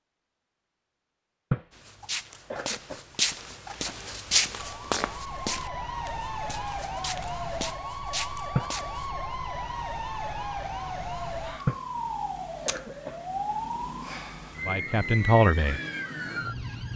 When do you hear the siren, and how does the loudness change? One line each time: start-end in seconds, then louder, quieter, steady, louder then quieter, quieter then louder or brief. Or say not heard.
4.5-16.9 steady.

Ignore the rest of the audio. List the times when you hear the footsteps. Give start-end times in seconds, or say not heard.
1.7-9.1.